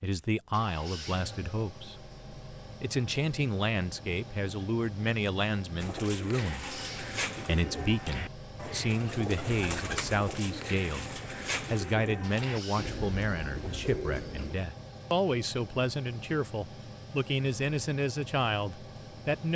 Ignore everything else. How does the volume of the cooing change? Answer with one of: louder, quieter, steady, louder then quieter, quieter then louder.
steady.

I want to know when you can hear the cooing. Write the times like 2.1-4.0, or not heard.
5.8-14.6.